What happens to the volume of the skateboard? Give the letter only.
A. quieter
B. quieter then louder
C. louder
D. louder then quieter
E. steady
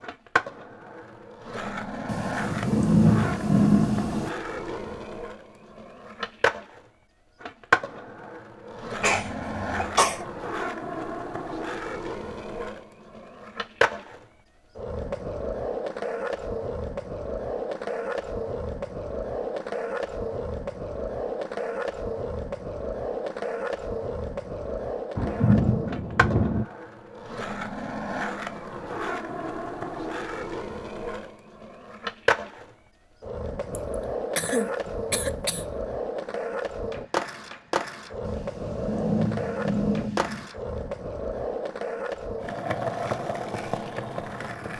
E.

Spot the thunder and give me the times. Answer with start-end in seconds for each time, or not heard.
2.0-4.3, 25.1-26.6, 38.2-40.5.